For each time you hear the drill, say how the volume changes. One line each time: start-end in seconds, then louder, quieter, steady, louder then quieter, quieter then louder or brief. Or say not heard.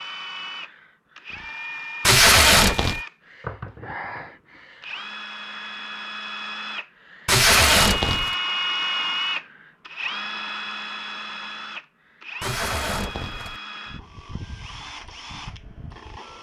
0.0-16.3 louder then quieter.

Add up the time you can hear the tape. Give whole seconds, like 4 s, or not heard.
3 s.